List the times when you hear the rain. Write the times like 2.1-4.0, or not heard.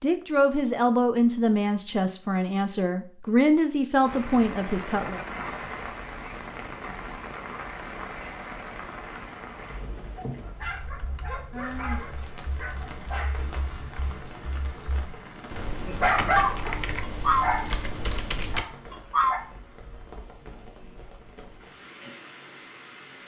4.0-23.2.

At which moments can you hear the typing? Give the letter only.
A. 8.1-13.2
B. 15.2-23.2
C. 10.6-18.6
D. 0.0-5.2
C.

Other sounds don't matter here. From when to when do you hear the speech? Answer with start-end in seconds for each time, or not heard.
0.0-5.2.